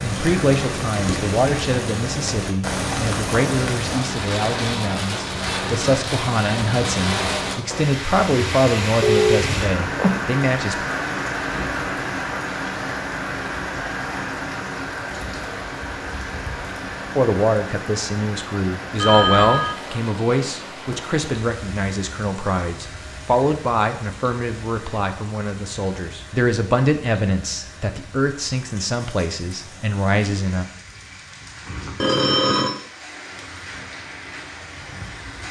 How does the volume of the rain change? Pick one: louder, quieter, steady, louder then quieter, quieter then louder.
quieter.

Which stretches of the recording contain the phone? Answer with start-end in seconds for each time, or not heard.
9.0-10.2, 19.0-19.8, 32.0-32.8.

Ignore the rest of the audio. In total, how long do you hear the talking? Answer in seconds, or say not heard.
24 s.